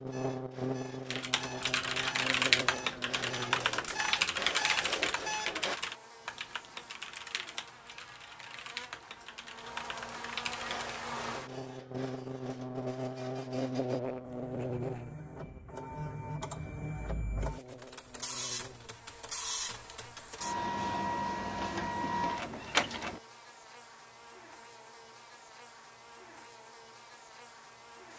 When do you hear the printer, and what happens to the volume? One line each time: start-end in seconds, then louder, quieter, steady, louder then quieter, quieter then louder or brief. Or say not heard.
0.0-5.8 louder
10.6-23.2 louder.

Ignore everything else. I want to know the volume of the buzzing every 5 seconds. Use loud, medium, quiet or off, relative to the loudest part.
loud, quiet, loud, quiet, quiet, quiet.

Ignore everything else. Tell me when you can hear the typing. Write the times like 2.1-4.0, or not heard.
1.1-10.9.